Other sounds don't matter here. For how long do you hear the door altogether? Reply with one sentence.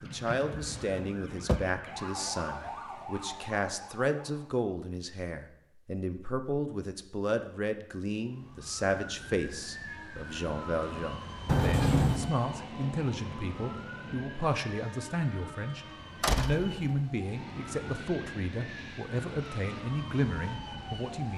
You can hear the door for 3 seconds altogether.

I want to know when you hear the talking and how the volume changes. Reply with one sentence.
The talking can be heard from 0.0 to 21.3 s, at a steady volume.